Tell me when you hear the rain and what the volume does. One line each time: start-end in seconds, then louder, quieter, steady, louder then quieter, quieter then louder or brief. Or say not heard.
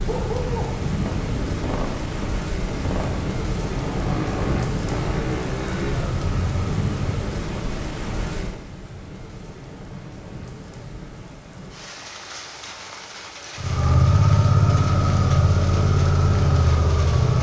0.0-17.3 quieter.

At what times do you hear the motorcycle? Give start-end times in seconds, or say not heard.
0.0-7.3, 13.6-17.3.